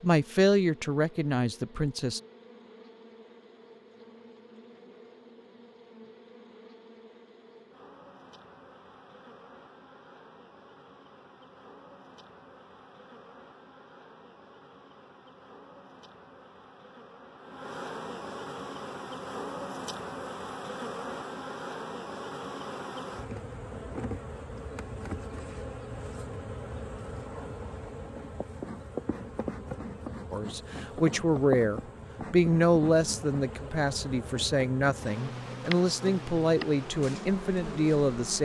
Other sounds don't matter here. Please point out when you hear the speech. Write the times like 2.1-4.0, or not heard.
0.0-2.2, 30.3-38.3.